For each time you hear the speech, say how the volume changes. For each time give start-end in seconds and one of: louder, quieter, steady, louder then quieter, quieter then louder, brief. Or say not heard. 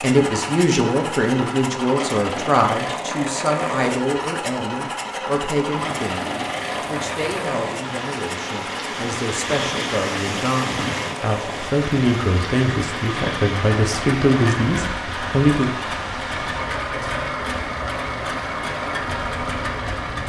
0.0-15.7 quieter then louder.